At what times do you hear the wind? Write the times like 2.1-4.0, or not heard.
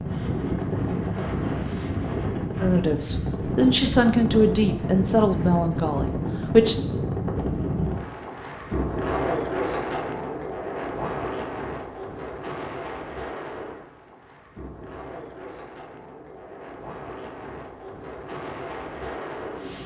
0.0-19.8.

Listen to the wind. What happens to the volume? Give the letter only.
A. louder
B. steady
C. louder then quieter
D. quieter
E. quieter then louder
D.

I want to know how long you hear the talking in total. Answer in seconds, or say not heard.
4 s.